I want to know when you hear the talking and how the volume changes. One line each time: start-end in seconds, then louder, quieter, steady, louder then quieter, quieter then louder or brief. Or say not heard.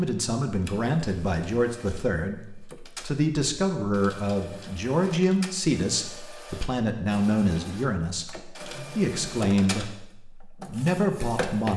0.0-11.7 steady.